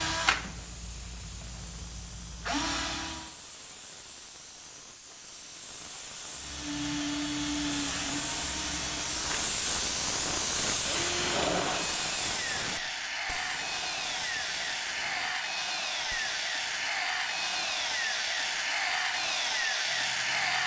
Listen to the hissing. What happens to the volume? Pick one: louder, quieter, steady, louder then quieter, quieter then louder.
louder then quieter.